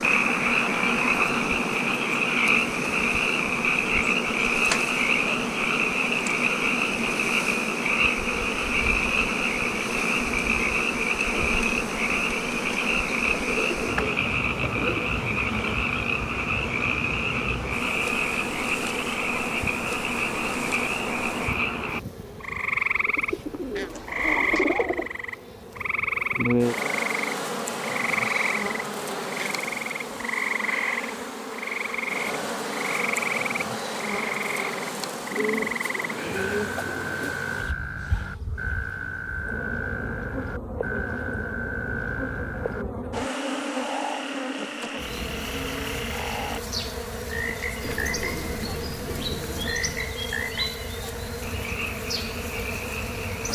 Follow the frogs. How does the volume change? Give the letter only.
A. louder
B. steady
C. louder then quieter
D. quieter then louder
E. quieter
E.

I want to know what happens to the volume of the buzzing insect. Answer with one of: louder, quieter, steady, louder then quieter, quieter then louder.
steady.